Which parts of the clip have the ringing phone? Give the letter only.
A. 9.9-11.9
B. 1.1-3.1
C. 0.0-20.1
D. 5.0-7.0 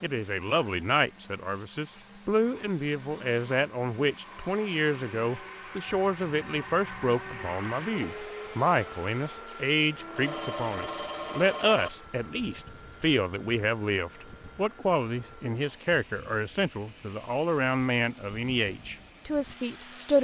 A.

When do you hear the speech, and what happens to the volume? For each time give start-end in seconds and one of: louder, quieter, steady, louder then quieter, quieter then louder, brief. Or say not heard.
0.0-20.1 steady.